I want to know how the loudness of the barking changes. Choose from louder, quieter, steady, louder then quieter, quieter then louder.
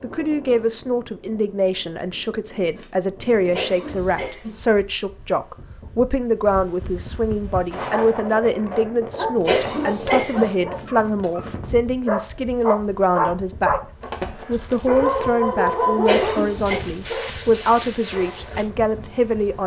louder then quieter.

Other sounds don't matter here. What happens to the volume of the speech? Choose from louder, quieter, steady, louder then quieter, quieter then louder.
steady.